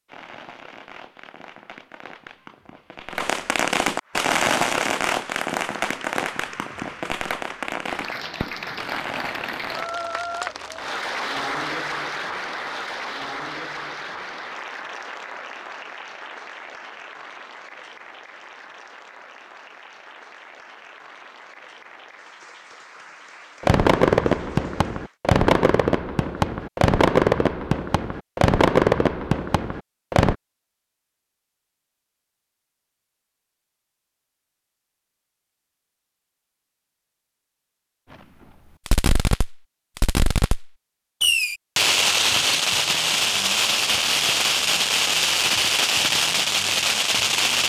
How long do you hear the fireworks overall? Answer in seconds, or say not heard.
25 s.